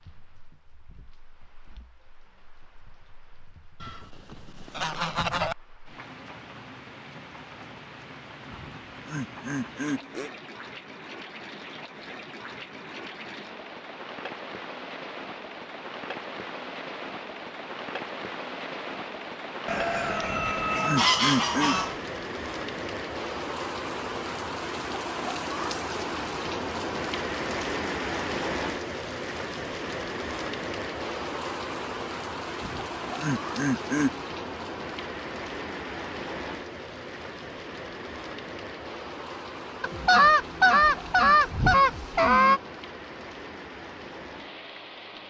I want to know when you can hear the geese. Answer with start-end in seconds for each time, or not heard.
3.8-5.5, 19.6-22.0, 39.8-42.6.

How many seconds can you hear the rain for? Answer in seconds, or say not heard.
45 s.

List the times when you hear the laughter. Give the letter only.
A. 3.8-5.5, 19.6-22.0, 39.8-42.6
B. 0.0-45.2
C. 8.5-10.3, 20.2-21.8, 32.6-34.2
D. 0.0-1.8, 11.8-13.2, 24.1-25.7
C.